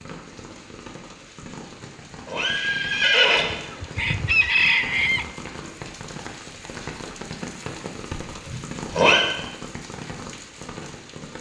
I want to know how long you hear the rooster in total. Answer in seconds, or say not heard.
2 s.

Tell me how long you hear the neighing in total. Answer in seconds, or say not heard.
2 s.